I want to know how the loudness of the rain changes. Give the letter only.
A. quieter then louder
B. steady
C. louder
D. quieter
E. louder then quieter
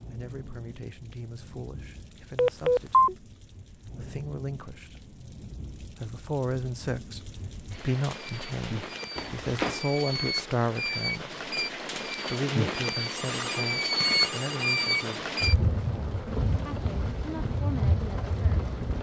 C.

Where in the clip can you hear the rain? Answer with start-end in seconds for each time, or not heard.
0.0-18.9.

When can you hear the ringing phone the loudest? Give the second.
3 s.